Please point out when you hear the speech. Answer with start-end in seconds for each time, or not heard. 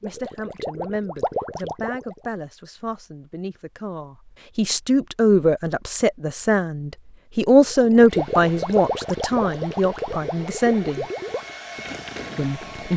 0.0-11.1, 12.3-12.9.